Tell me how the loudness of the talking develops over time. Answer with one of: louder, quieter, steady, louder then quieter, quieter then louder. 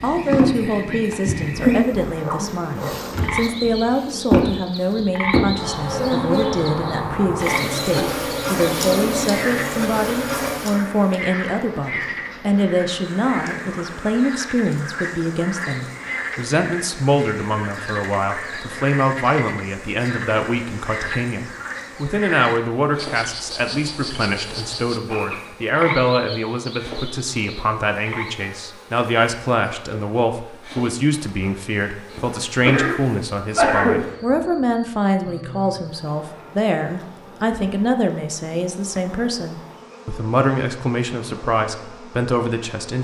steady.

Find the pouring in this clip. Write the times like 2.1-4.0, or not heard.
not heard.